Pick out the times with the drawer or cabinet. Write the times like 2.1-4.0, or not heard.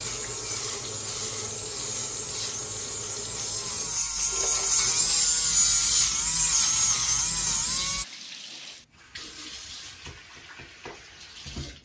not heard.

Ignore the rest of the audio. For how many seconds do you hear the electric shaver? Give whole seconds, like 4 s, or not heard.
8 s.